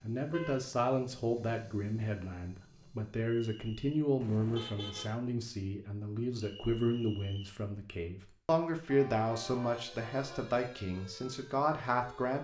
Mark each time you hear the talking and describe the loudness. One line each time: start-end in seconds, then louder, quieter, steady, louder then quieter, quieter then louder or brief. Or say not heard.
0.0-12.3 steady.